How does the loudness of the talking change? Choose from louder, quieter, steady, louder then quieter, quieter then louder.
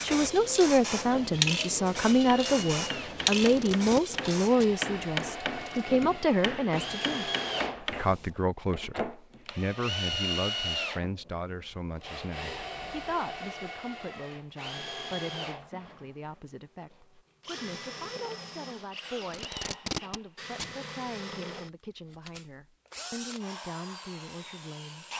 quieter.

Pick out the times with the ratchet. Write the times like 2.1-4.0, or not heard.
not heard.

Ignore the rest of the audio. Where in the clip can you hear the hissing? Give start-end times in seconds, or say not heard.
0.0-4.5.